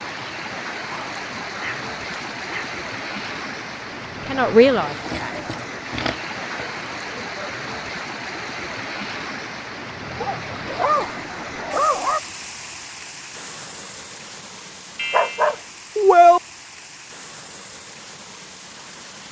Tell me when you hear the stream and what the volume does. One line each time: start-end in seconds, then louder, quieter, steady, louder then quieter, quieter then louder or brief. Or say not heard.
0.0-19.2 quieter.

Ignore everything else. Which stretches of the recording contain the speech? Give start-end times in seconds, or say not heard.
4.2-5.5.